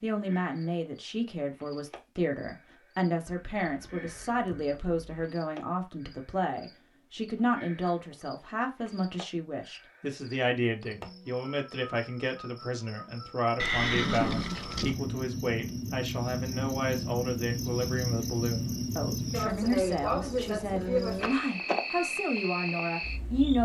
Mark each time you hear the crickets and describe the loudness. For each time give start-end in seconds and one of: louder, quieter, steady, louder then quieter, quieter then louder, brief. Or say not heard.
0.1-23.6 louder.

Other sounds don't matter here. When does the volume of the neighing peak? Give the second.
14 s.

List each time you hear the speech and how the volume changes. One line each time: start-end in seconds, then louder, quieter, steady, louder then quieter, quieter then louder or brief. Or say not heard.
0.0-23.6 steady.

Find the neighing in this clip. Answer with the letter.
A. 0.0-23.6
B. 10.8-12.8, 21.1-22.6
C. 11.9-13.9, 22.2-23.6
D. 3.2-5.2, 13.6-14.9
D.